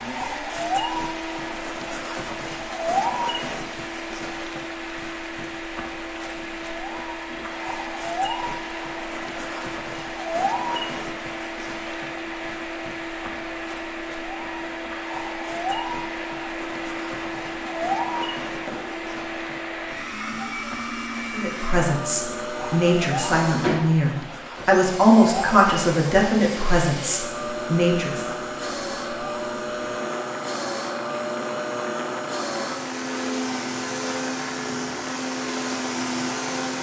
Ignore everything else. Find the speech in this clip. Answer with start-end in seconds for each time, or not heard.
21.3-28.4.